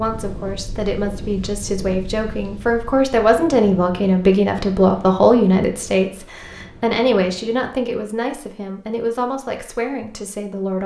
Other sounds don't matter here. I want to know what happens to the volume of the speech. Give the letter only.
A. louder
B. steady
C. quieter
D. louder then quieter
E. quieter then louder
D.